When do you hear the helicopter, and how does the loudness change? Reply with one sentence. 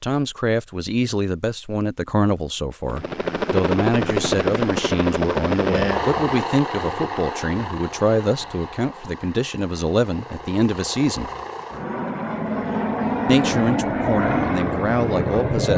You can hear the helicopter from 2.9 to 15.7 s, getting quieter then louder.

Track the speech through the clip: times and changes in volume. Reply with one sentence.
The speech can be heard from 0.0 to 11.3 s, at a steady volume; and briefly from 13.2 to 15.7 s.